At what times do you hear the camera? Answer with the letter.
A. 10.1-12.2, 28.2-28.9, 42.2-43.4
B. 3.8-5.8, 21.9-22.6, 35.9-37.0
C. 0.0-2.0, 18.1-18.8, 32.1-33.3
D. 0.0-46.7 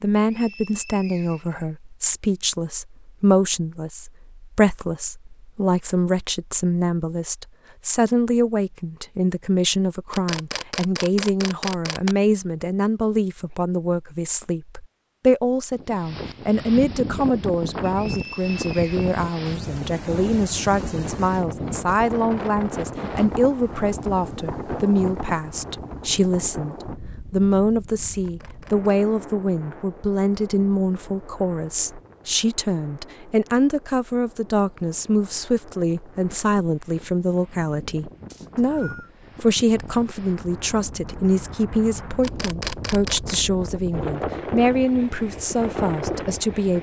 A.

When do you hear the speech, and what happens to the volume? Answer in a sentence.
The speech can be heard from 0.0 to 46.7 s, at a steady volume.